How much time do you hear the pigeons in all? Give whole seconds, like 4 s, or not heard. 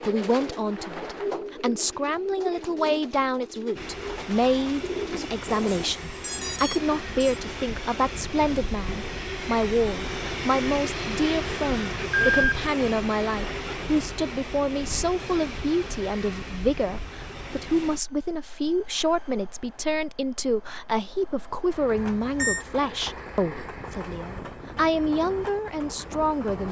6 s.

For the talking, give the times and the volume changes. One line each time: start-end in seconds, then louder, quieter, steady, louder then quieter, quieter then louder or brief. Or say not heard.
0.0-26.6 steady.